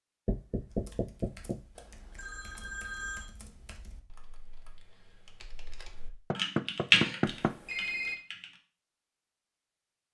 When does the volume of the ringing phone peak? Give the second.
8 s.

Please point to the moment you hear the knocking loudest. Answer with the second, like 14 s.
7 s.